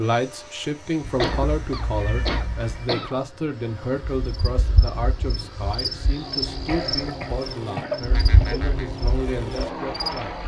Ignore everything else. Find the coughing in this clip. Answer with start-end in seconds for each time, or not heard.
1.2-3.1, 6.7-8.7.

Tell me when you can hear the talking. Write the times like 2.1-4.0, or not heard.
0.0-10.4.